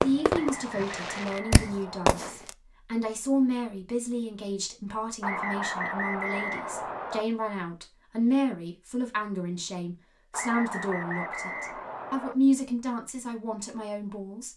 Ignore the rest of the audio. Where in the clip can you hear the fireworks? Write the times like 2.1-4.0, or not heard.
0.0-2.5.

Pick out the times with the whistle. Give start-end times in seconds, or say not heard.
0.3-2.4, 5.2-7.2, 10.3-12.3.